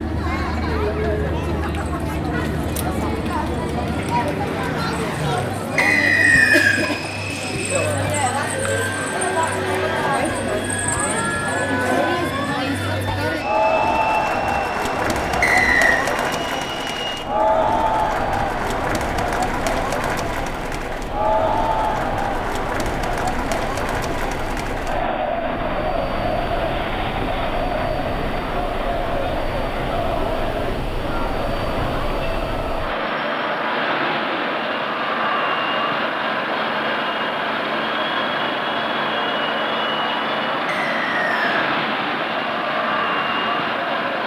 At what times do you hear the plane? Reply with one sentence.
You can hear the plane from 0.0 to 44.2 s.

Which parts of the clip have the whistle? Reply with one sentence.
The whistle can be heard from 5.8 to 6.8 s, from 15.4 to 16.0 s and from 40.6 to 41.7 s.